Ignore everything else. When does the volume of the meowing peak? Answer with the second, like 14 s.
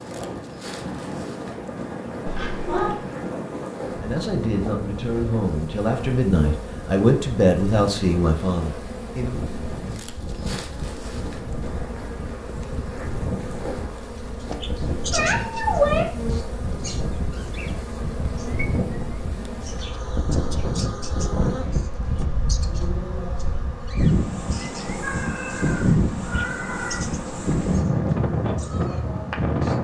16 s.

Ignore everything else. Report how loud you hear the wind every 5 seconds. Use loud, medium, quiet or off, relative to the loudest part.
medium, quiet, medium, medium, loud, loud.